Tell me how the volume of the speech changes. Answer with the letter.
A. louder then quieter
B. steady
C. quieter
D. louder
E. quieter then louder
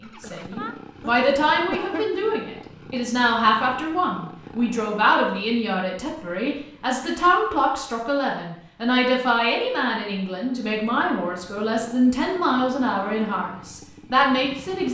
B.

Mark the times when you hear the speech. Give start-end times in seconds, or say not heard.
0.0-14.9.